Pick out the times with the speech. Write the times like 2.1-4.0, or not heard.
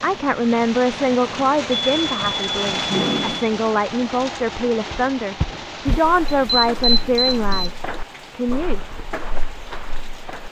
0.0-8.8.